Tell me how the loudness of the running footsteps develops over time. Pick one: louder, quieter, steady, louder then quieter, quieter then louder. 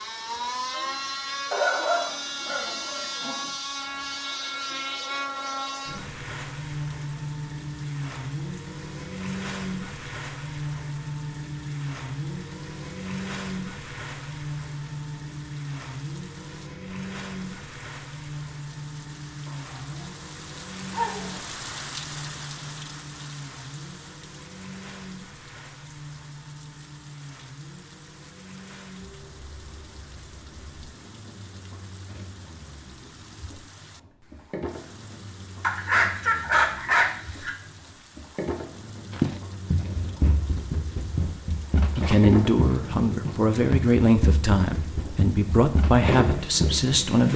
steady.